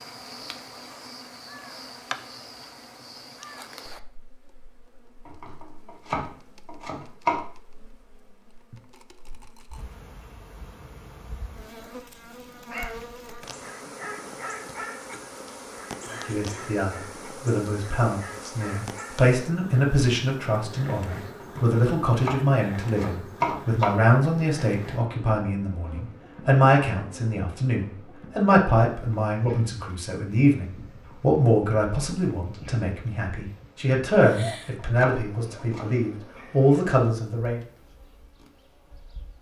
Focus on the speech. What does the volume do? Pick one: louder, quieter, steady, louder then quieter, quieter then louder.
steady.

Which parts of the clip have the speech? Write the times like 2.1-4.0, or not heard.
16.1-37.6.